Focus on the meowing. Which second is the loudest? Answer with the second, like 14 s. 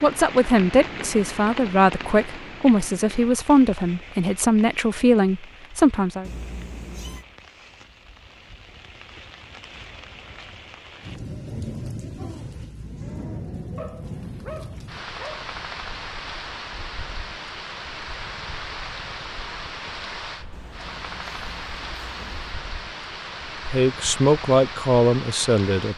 7 s.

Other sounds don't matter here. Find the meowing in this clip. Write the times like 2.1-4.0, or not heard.
6.2-7.2, 20.5-22.6.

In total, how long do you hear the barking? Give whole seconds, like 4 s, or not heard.
3 s.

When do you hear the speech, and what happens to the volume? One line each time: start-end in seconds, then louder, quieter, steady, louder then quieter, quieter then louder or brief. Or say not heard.
0.0-6.2 steady
23.6-25.9 brief.